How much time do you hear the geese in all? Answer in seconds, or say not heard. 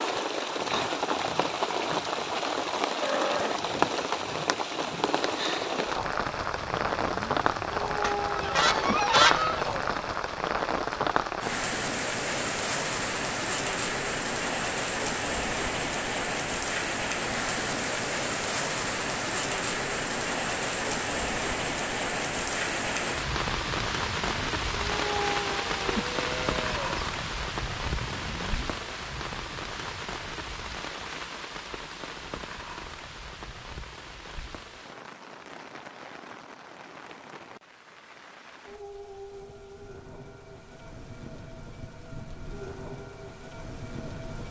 2 s.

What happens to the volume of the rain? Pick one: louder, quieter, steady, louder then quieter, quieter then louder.
quieter.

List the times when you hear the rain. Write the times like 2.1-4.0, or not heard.
0.0-44.4.